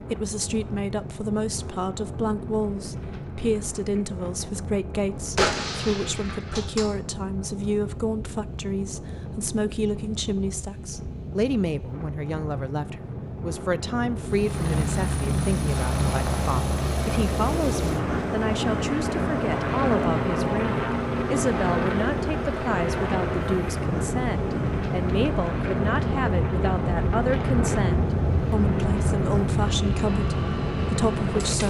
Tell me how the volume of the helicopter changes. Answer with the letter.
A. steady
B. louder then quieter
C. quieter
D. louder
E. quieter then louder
C.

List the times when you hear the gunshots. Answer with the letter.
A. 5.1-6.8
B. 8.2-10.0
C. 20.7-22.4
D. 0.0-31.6
A.